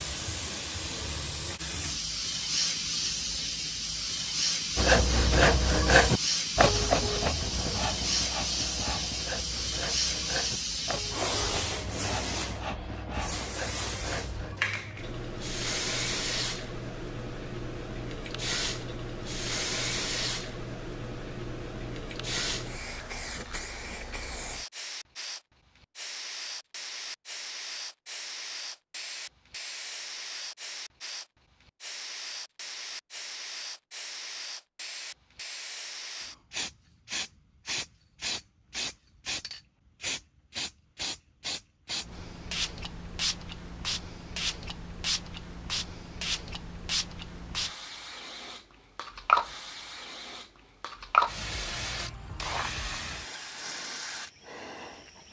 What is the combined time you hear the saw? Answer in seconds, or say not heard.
10 s.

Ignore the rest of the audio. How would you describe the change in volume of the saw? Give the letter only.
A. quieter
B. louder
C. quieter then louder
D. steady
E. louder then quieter
A.